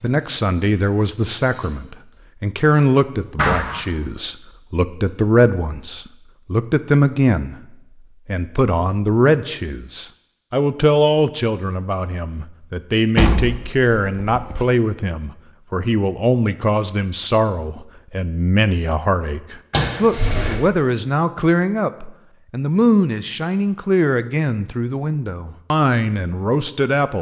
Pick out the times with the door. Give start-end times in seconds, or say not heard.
3.4-4.0, 13.2-14.7, 19.7-20.6.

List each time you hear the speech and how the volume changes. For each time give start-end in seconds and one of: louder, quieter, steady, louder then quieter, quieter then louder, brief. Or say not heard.
0.0-27.1 steady.